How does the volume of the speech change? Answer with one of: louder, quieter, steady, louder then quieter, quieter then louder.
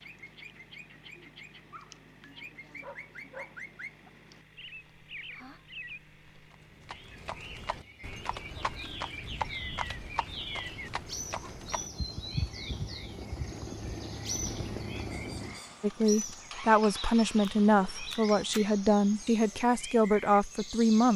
steady.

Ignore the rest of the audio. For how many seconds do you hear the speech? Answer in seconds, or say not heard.
5 s.